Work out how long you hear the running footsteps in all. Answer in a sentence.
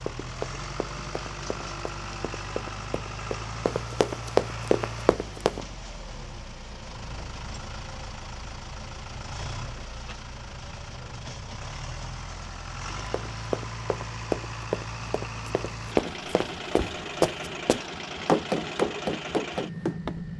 The running footsteps can be heard for 13 seconds in total.